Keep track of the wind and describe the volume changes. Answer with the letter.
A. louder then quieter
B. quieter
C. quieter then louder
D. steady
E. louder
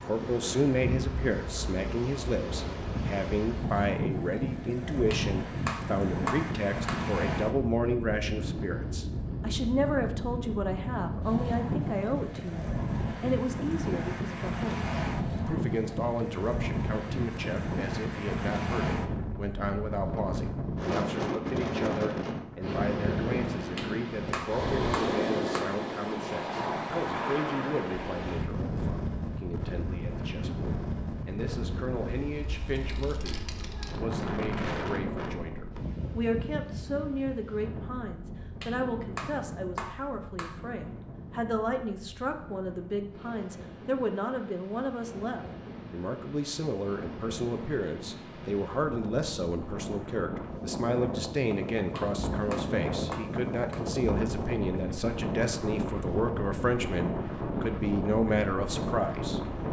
C.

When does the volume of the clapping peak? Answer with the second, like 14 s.
6 s.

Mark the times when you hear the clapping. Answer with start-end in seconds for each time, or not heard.
5.1-7.0, 23.8-25.8, 38.6-40.5, 52.0-53.9.